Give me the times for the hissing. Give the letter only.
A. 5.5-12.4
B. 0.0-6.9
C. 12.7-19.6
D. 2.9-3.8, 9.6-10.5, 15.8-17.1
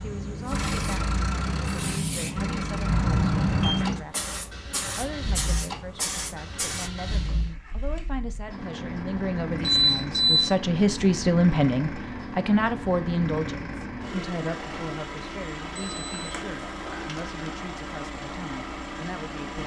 B.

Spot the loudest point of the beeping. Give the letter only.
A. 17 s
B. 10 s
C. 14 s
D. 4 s
B.